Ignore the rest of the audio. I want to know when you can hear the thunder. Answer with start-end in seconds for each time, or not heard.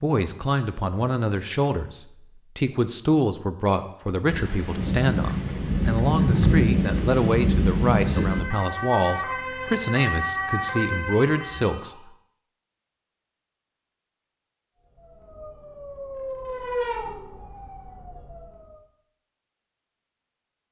4.3-8.4.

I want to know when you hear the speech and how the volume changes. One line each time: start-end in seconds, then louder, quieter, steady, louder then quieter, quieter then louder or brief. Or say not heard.
0.0-11.9 steady.